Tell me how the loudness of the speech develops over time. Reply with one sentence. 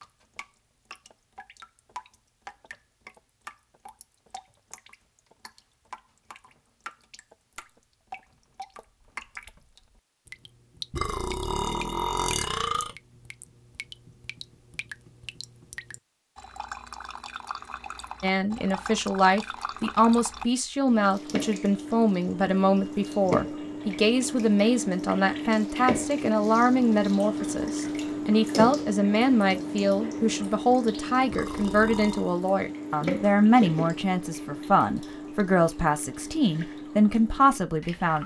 The loudness of the speech stays about the same.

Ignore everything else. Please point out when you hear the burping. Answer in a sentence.
You can hear the burping from 10.9 to 12.9 s and from 31.3 to 32.4 s.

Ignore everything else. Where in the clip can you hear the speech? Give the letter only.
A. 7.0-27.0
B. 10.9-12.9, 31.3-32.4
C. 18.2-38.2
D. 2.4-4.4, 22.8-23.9
C.